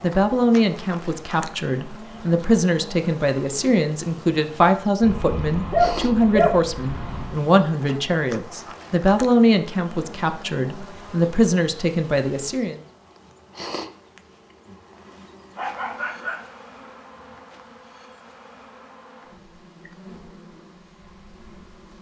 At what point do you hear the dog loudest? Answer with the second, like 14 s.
6 s.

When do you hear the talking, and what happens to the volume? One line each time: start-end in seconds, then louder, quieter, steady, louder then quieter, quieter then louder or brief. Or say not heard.
0.0-12.8 steady.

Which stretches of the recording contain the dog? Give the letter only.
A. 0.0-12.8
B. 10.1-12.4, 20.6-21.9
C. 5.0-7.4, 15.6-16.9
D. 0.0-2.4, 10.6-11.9
C.